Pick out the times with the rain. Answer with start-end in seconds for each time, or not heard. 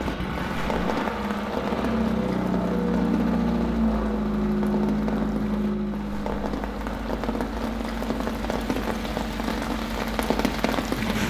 0.0-11.2.